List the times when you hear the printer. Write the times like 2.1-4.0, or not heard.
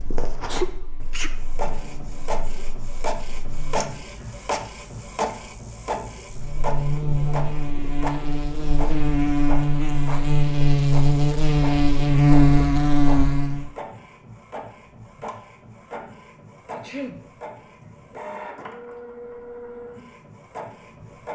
0.0-21.3.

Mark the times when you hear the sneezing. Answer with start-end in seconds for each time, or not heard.
0.5-1.4, 16.7-17.2.